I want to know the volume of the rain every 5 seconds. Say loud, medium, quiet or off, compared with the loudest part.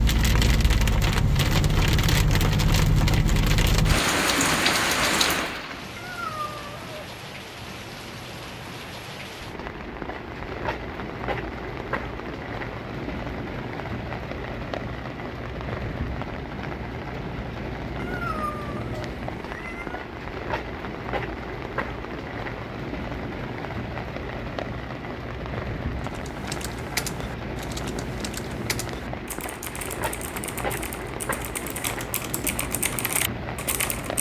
loud, medium, medium, medium, medium, medium, medium.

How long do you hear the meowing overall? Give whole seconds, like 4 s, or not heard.
3 s.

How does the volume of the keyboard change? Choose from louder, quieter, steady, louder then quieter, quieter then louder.
quieter then louder.